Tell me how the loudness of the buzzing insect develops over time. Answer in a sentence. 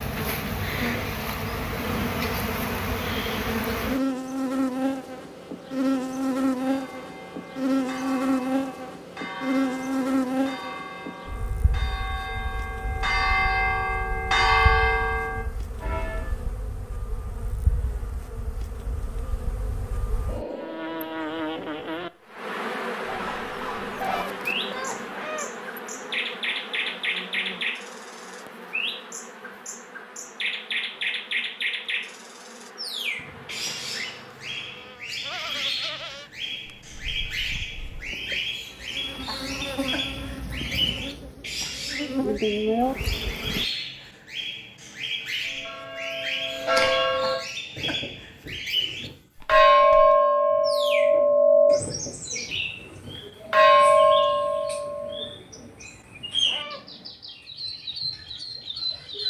The volume of the buzzing insect goes down, then up.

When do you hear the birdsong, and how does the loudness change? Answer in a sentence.
You can hear the birdsong from 23.1 to 59.2 s, at a steady volume.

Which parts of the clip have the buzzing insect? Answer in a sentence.
The buzzing insect can be heard from 0.0 to 43.6 s.